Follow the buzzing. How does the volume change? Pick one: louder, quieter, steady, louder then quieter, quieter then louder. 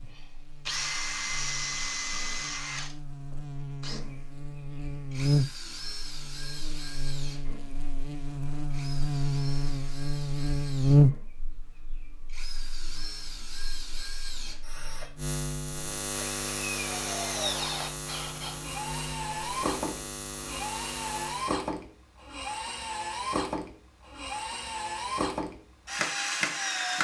louder then quieter.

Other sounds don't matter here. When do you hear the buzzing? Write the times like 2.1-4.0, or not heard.
0.0-21.6.